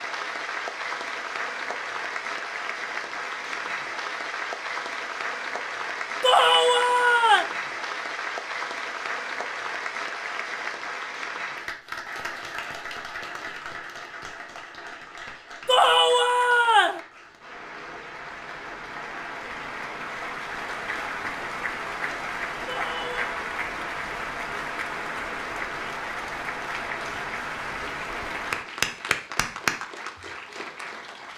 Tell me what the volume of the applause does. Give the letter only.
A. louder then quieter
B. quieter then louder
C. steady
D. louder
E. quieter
B.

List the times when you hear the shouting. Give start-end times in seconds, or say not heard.
6.2-7.5, 15.7-17.0, 22.6-23.4.